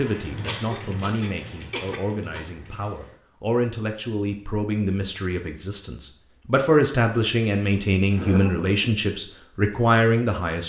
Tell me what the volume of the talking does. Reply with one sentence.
The loudness of the talking goes up.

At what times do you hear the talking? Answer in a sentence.
The talking can be heard from 0.0 to 10.6 s.